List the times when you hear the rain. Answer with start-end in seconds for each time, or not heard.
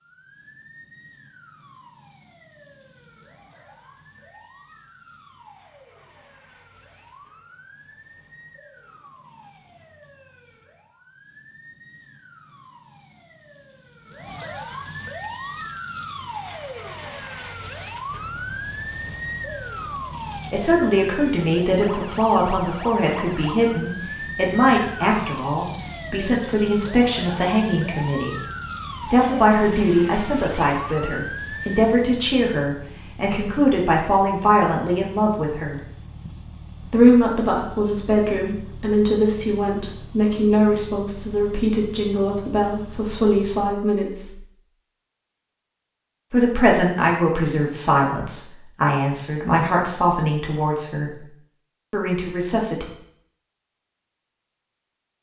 not heard.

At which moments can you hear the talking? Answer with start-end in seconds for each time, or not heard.
20.5-28.4, 29.0-35.9, 36.9-44.5, 46.3-51.2, 51.9-52.9.